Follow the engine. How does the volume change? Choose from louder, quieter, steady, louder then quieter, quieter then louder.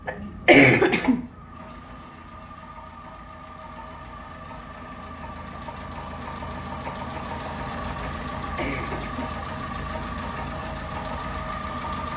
louder.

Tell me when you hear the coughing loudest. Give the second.
1 s.